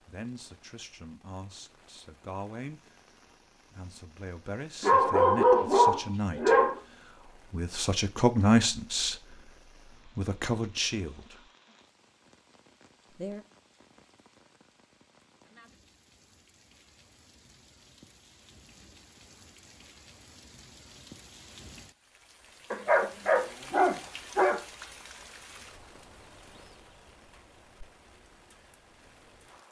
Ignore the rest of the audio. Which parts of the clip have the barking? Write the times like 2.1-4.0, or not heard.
4.8-6.8, 22.7-24.6.